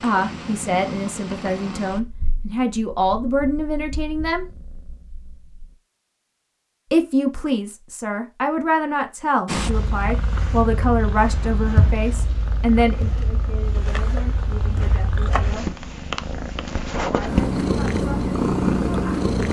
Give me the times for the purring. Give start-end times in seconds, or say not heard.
0.0-5.8, 9.4-19.4.